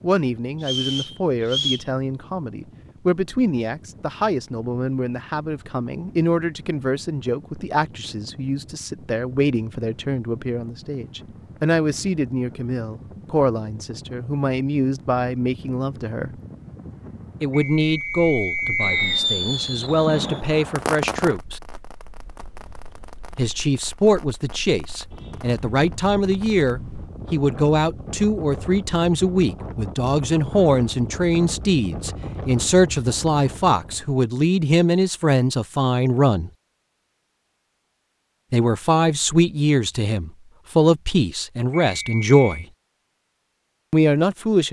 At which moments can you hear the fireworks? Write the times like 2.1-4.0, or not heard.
18.8-26.8.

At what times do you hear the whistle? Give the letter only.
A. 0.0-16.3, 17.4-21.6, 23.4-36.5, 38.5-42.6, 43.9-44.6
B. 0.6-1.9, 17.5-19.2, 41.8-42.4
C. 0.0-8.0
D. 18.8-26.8
B.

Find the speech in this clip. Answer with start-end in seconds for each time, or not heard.
0.0-16.3, 17.4-21.6, 23.4-36.5, 38.5-42.6, 43.9-44.6.